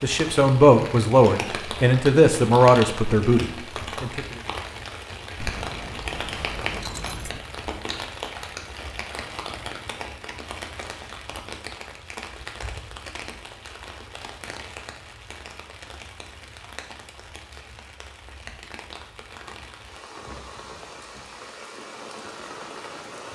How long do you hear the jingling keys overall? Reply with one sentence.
The jingling keys can be heard for 2 seconds in total.